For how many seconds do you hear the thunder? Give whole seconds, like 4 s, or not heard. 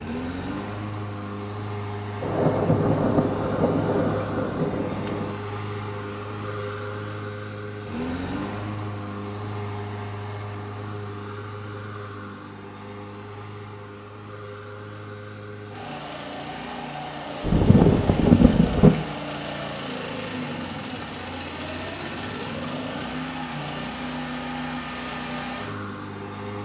5 s.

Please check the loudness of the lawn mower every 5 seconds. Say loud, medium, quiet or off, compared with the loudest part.
loud, loud, medium, loud, loud, loud.